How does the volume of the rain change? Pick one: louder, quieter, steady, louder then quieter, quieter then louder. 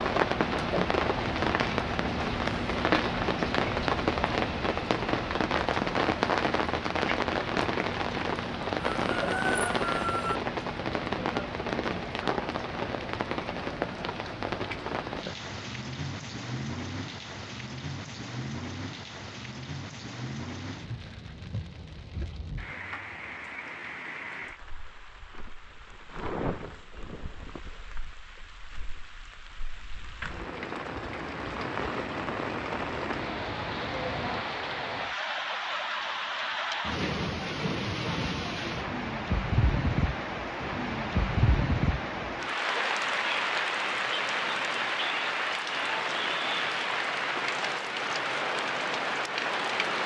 quieter then louder.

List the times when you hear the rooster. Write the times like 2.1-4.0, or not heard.
9.0-10.4.